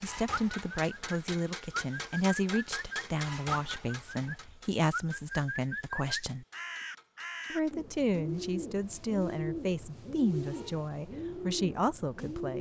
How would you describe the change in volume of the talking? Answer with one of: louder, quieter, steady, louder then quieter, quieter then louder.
steady.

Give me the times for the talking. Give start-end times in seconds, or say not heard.
0.0-6.5, 7.5-12.5.